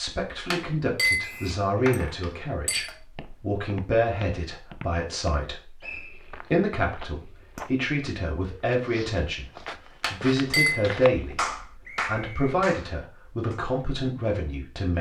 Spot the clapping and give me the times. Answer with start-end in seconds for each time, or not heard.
10.2-13.6.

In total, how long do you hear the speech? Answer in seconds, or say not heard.
14 s.